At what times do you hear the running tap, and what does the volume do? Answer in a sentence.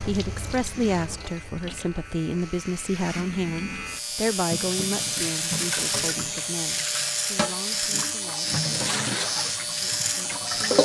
The running tap can be heard from 0.0 to 10.8 s, getting louder.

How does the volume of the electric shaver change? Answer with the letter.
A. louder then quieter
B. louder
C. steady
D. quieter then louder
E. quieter
B.